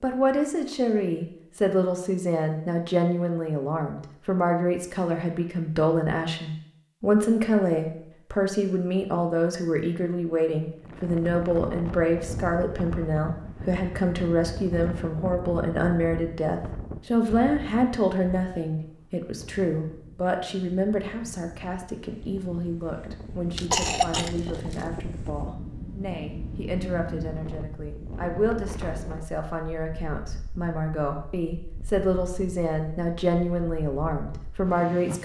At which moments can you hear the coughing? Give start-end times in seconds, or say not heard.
23.6-24.9.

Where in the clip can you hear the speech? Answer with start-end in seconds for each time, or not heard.
0.0-35.2.